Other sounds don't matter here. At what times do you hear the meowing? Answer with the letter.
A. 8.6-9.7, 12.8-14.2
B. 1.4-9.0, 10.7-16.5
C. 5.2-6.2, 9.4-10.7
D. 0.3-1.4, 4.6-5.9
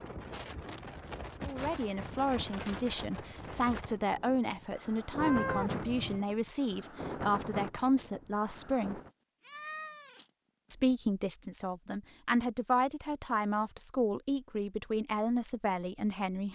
C.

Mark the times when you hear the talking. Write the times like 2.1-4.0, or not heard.
1.4-9.0, 10.7-16.5.